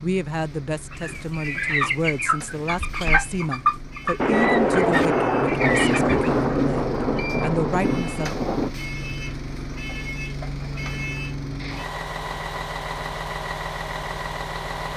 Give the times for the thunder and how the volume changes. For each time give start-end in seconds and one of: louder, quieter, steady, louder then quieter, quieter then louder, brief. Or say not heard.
4.2-8.7 quieter.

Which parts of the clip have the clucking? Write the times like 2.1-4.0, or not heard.
0.9-6.3.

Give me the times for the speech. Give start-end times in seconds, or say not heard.
0.0-8.3.